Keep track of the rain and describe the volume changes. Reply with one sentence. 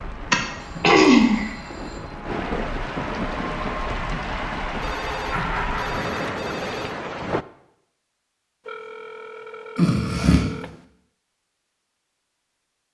The loudness of the rain goes up.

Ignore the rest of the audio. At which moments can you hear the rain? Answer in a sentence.
The rain can be heard from 0.0 to 7.5 s.